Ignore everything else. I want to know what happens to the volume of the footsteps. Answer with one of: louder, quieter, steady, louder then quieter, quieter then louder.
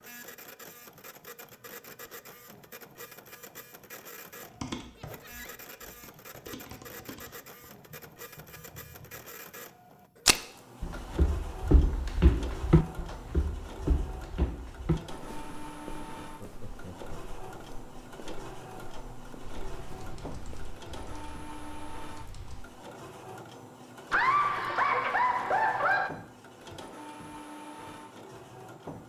quieter.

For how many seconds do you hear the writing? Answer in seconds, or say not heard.
not heard.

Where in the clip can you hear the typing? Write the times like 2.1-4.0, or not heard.
4.4-9.2, 19.6-22.6.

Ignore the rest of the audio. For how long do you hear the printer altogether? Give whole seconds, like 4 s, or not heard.
29 s.